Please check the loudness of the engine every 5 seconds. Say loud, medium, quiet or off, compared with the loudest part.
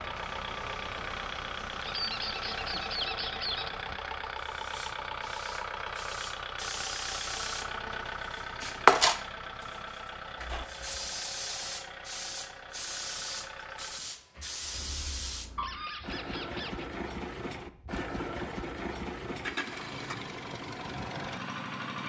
loud, loud, medium, loud, loud.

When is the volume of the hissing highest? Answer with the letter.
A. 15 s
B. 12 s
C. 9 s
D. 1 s
C.